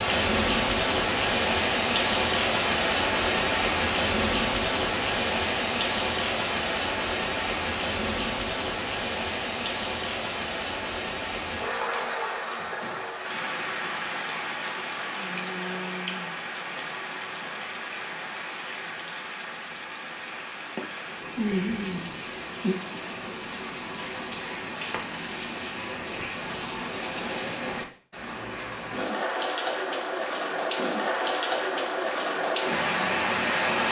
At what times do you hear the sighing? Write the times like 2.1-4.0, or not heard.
21.4-22.8.